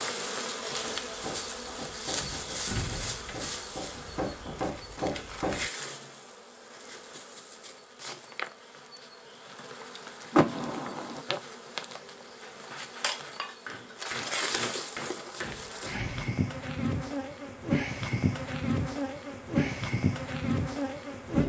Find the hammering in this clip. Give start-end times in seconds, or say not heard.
0.7-6.2, 12.3-16.1.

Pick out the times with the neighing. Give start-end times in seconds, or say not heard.
not heard.